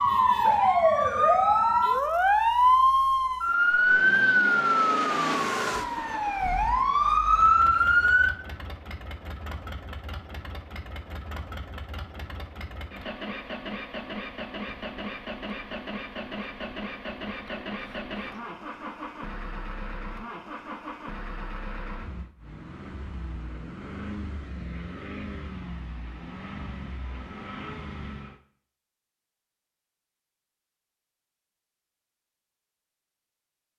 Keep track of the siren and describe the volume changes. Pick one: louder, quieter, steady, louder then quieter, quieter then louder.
quieter then louder.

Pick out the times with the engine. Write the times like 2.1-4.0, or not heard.
3.6-28.4.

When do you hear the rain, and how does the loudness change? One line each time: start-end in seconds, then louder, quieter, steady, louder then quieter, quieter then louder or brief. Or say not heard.
not heard.